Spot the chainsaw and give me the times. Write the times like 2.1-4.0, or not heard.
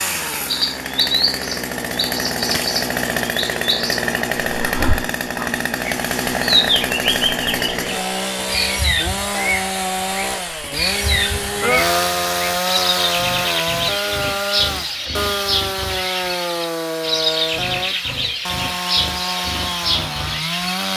0.0-20.9.